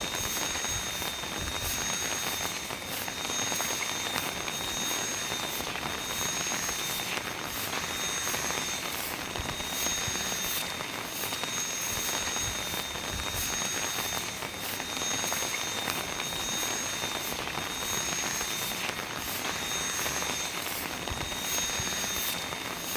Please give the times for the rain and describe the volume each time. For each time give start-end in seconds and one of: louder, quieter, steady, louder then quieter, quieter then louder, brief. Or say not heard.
0.0-22.9 steady.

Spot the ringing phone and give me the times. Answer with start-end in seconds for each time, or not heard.
not heard.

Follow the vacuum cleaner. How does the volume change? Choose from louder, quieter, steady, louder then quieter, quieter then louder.
steady.